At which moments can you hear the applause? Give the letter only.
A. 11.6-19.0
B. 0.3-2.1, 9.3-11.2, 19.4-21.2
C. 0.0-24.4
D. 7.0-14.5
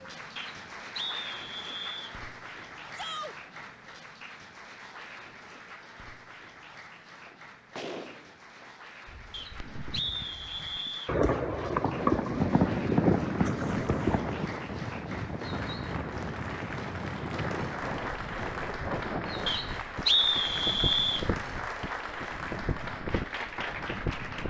C.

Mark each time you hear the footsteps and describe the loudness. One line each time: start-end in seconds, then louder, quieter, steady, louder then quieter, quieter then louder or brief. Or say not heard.
not heard.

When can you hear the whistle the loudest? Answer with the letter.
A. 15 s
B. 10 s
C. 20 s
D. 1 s
C.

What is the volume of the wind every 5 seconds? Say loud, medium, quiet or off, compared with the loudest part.
off, off, loud, loud, loud.